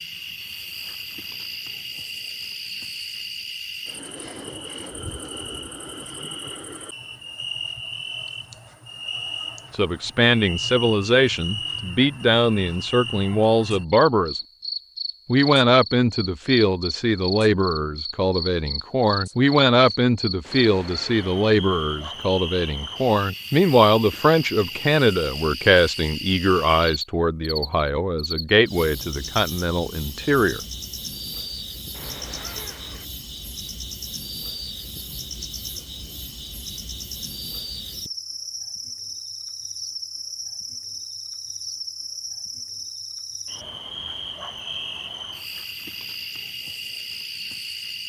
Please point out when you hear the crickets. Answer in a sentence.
The crickets can be heard from 0.0 to 48.0 s.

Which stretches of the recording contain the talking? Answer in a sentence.
You can hear the talking from 9.7 to 14.4 s and from 15.2 to 30.6 s.